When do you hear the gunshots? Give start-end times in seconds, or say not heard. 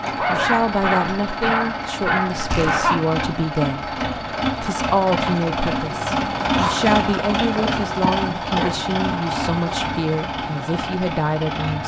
2.5-3.0.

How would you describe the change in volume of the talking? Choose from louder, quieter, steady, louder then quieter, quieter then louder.
steady.